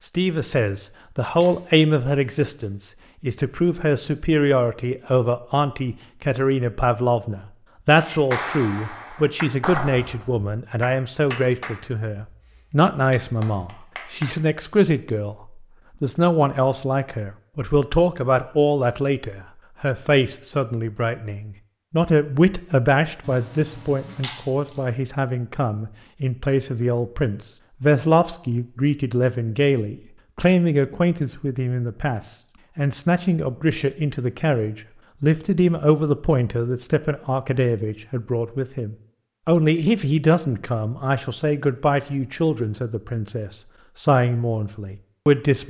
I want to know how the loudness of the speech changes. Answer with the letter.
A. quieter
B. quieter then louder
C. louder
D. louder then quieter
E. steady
E.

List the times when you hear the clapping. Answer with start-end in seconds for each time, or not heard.
8.0-14.3.